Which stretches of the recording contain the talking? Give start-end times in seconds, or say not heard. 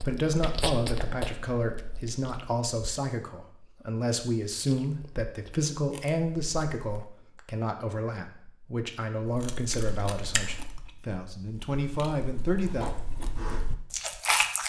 0.0-12.8.